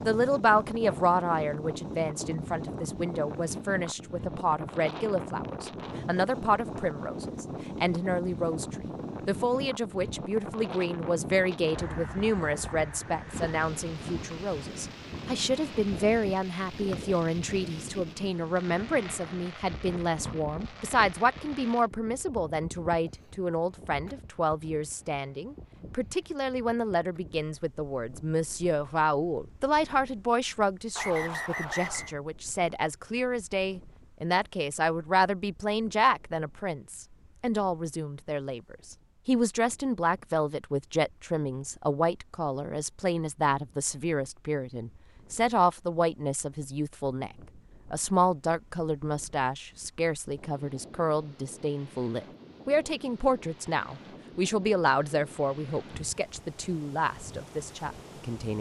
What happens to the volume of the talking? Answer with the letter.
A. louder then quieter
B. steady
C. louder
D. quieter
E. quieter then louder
B.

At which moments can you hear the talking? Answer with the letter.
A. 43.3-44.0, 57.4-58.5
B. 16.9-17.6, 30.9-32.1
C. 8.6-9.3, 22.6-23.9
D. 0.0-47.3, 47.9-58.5
D.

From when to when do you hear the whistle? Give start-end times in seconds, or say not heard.
16.9-17.6, 30.9-32.1.